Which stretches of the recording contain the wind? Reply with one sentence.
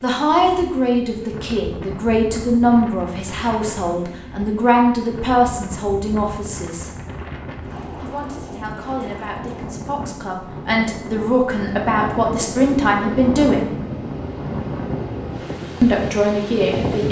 You can hear the wind from 0.0 to 17.0 s.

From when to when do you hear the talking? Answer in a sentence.
You can hear the talking from 0.0 to 6.9 s, from 8.0 to 13.7 s and from 15.8 to 17.0 s.